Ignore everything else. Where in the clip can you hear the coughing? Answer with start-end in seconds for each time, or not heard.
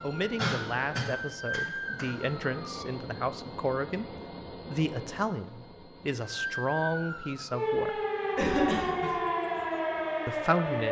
0.3-2.0, 8.3-9.2.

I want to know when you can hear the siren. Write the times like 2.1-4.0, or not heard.
0.0-3.0, 6.2-10.8.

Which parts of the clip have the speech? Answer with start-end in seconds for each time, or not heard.
0.0-8.0, 10.2-10.8.